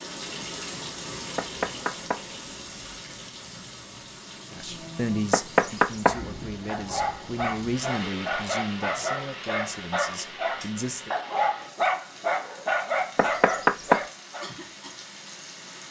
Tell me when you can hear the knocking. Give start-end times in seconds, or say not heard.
1.4-2.2, 5.3-6.2, 13.2-14.0.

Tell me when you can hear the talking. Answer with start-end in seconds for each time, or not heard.
4.5-11.1.